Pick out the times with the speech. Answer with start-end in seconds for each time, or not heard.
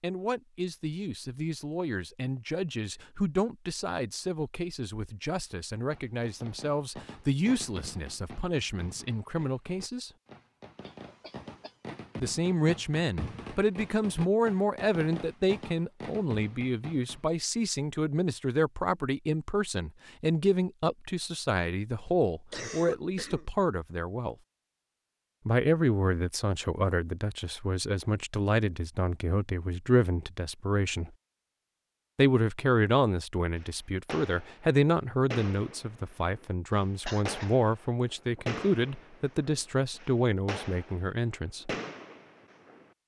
0.0-10.1, 12.2-24.4, 25.4-31.1, 32.1-41.7.